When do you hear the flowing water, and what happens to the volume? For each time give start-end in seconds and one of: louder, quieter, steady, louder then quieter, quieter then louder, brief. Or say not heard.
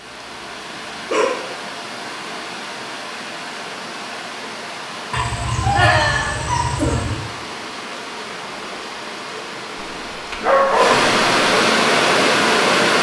0.0-12.9 louder.